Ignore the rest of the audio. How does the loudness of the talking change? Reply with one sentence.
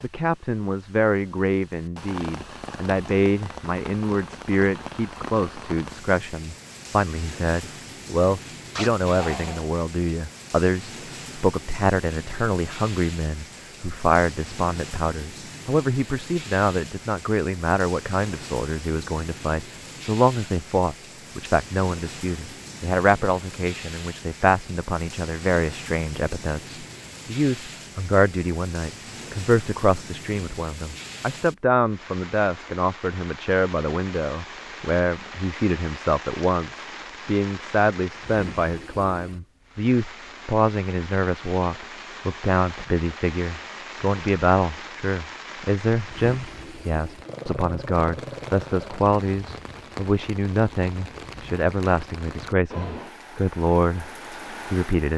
The volume of the talking stays about the same.